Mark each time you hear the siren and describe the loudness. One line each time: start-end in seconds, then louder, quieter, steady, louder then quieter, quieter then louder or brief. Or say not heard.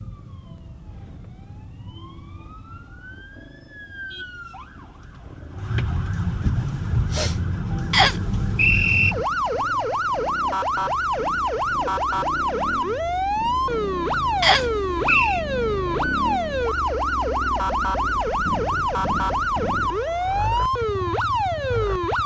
0.0-22.2 louder.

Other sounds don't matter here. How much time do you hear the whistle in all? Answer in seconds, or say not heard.
2 s.